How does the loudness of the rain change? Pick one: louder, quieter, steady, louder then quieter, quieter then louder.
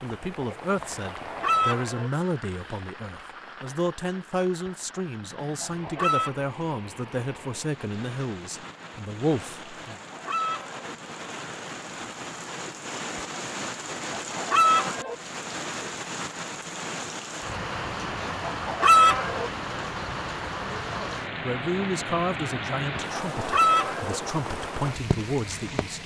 louder.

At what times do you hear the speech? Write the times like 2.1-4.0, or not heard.
0.0-9.9, 21.4-26.0.